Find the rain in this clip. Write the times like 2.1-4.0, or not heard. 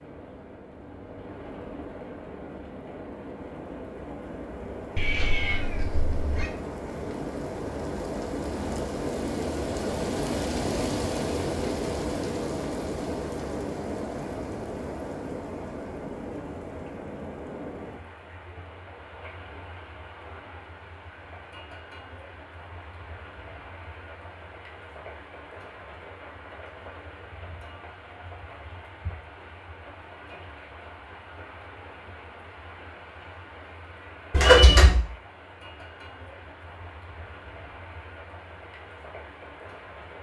0.0-40.1.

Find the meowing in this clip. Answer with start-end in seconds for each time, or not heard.
5.0-6.5, 34.3-35.0.